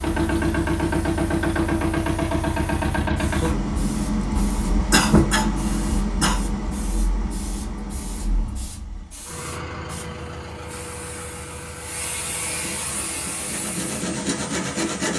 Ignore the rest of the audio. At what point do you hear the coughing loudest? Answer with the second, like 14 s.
5 s.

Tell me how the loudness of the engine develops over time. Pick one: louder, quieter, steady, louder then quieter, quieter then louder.
quieter.